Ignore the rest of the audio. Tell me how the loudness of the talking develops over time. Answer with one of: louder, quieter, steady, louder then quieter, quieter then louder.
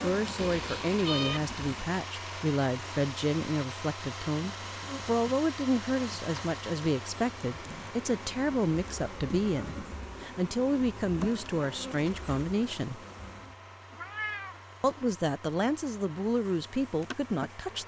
steady.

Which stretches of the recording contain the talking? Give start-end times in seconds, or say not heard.
0.0-13.0, 14.8-17.8.